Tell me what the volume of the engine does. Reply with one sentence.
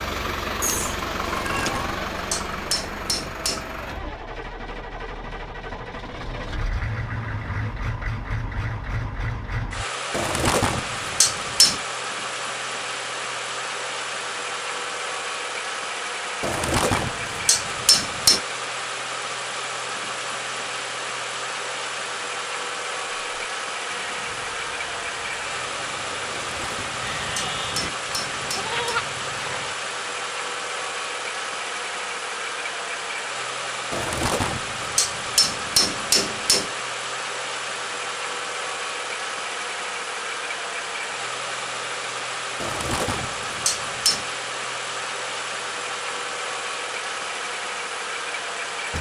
The volume of the engine stays about the same.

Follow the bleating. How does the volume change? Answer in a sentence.
The volume of the bleating goes up.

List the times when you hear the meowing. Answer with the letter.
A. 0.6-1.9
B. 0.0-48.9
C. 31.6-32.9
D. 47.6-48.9
A.